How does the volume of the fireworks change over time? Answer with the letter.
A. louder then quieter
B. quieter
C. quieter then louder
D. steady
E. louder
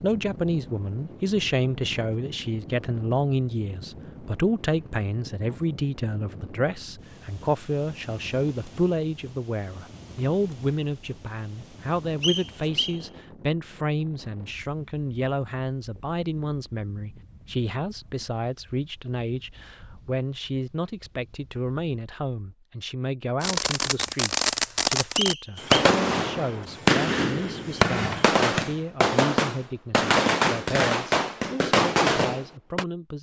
D.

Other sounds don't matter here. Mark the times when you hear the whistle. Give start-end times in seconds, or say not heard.
12.2-13.0, 25.1-25.9.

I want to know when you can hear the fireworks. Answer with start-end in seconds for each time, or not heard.
23.4-32.9.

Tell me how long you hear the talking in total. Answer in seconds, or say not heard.
33 s.